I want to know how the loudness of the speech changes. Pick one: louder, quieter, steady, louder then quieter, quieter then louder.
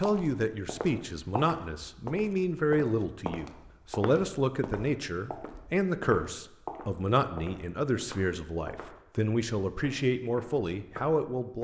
steady.